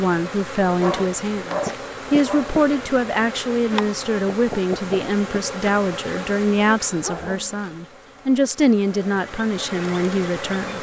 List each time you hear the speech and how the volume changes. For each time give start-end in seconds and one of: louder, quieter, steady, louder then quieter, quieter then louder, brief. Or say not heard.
0.0-10.7 steady.